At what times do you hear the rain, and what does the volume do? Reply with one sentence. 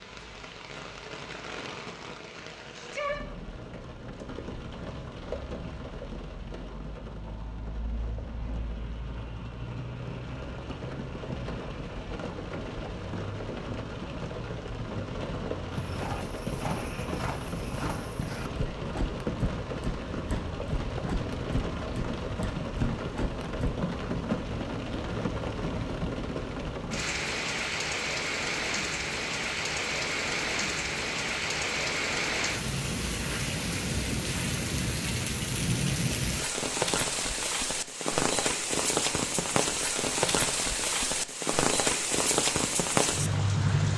The rain can be heard from 0.0 to 43.9 s, getting louder.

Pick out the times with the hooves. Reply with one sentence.
You can hear the hooves from 15.7 to 23.9 s.